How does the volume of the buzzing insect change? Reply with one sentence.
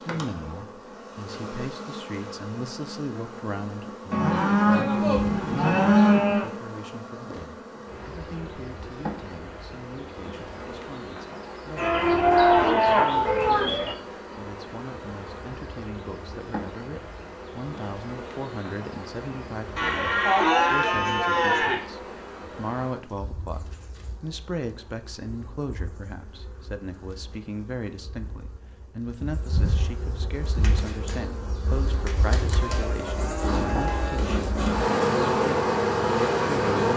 The volume of the buzzing insect goes down, then up.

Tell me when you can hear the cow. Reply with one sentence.
You can hear the cow from 4.1 to 6.5 s, from 11.8 to 13.9 s, from 19.8 to 21.8 s and from 32.5 to 34.2 s.